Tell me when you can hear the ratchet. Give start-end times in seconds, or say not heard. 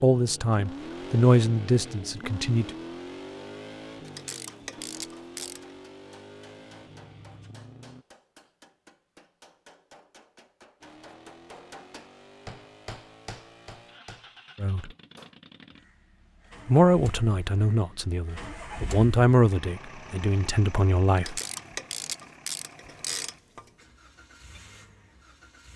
4.0-5.8, 21.1-23.7.